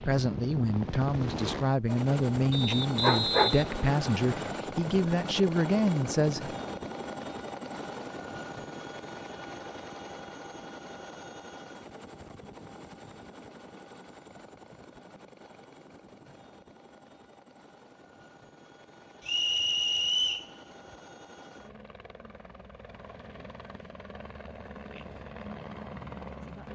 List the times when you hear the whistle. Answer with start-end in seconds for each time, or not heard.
2.5-4.5, 19.2-20.5.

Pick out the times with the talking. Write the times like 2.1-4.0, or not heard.
0.0-6.5.